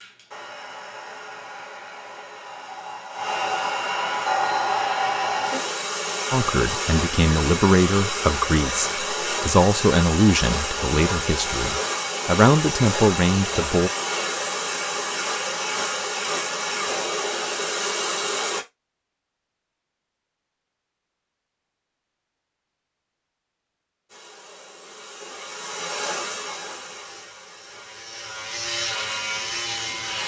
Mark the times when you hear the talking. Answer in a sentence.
The talking can be heard from 6.3 to 13.9 s.